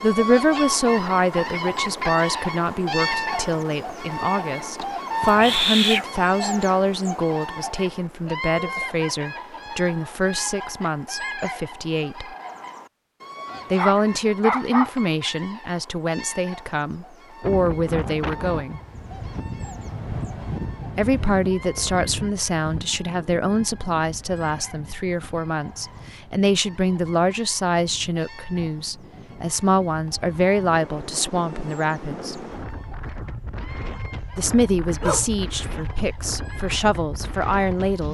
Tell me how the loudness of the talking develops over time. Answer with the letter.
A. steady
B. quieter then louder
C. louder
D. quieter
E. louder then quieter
A.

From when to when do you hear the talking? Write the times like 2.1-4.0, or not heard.
0.0-12.3, 13.7-18.8, 20.9-32.4, 34.4-38.0.